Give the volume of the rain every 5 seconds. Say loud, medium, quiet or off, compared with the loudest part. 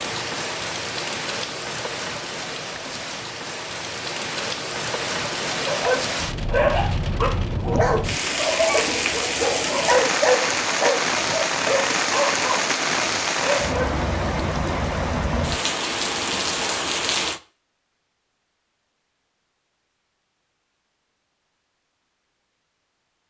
medium, loud, loud, loud, off.